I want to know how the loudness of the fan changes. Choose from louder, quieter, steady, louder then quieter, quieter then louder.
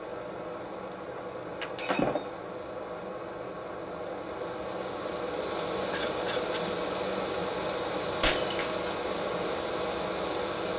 louder.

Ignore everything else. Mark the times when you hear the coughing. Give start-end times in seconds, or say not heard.
1.1-1.7, 5.5-6.8.